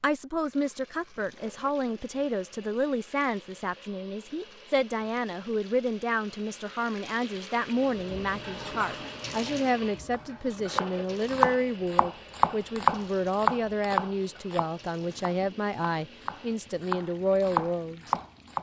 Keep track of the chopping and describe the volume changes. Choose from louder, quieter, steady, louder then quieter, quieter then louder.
quieter then louder.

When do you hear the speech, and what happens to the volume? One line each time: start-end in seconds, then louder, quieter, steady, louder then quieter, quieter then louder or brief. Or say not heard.
0.0-18.1 steady.